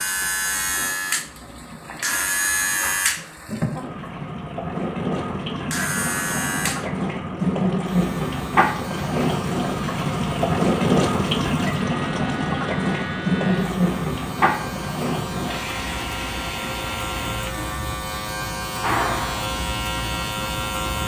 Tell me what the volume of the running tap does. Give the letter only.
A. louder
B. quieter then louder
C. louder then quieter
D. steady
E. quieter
C.